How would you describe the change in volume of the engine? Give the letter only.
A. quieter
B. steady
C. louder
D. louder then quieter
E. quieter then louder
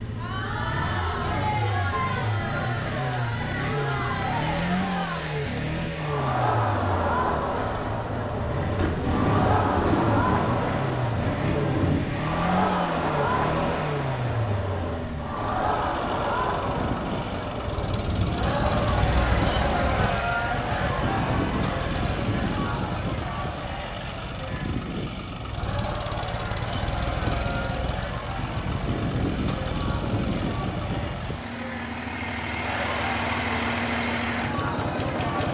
B.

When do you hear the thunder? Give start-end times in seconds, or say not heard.
8.8-12.2, 18.1-20.1.